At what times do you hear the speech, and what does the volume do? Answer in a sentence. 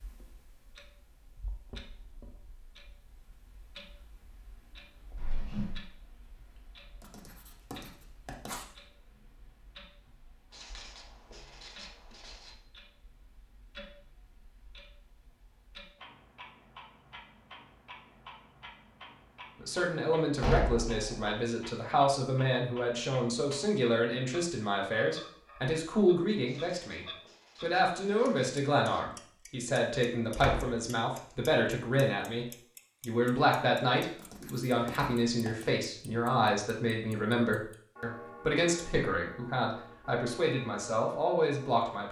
You can hear the speech from 19.6 to 42.0 s, at a steady volume.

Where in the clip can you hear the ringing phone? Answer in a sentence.
You can't hear the ringing phone here.